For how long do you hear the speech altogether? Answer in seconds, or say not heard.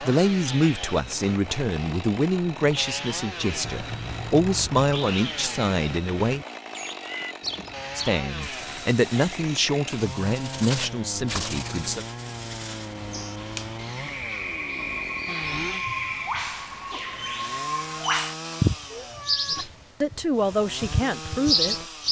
13 s.